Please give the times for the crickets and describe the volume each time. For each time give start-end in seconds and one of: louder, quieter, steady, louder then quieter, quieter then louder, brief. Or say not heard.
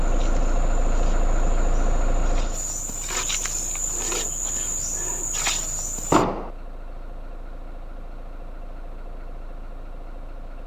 0.0-6.2 louder.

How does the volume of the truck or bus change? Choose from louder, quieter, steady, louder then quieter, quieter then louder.
quieter.